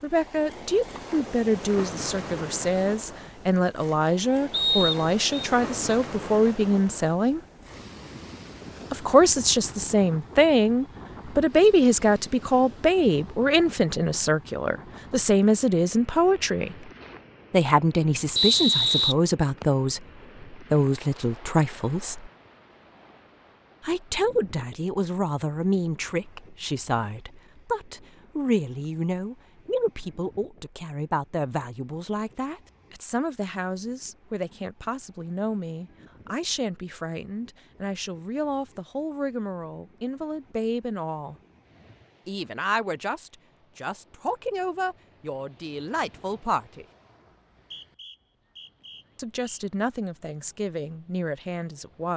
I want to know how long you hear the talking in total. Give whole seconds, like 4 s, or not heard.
45 s.